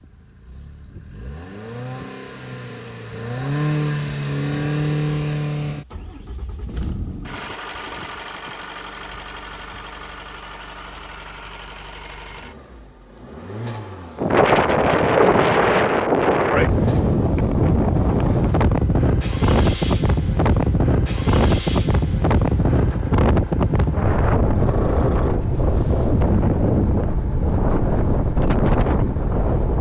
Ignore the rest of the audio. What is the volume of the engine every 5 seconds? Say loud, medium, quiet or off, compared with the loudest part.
loud, loud, medium, medium, medium, medium.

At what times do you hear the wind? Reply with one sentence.
The wind can be heard from 14.2 to 29.7 s.